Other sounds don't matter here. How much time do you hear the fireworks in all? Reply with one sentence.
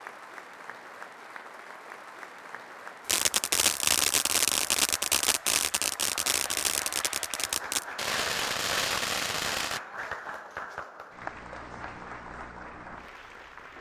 You can hear the fireworks for 7 seconds altogether.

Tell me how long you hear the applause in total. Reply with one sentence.
The applause can be heard for 14 seconds in total.